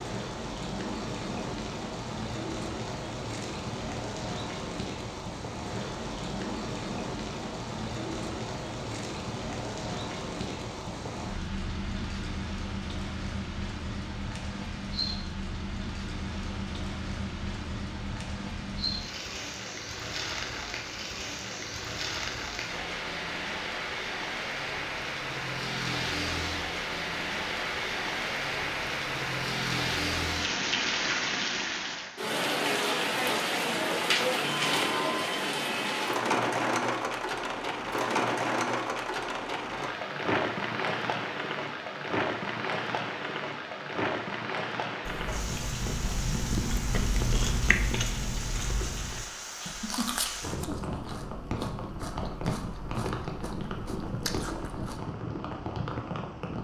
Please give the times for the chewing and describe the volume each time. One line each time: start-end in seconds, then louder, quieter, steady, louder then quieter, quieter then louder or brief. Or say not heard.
45.0-55.0 quieter.